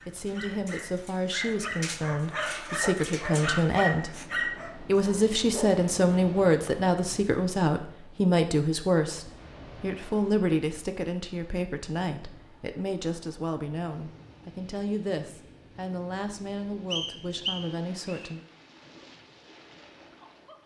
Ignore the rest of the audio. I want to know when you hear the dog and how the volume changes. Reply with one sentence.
You can hear the dog from 0.0 to 5.7 s, getting louder.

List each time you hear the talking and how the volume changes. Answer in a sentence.
You can hear the talking from 0.1 to 4.1 s, getting louder; and from 4.8 to 18.4 s, getting quieter.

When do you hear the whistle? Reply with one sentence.
The whistle can be heard from 16.9 to 18.3 s.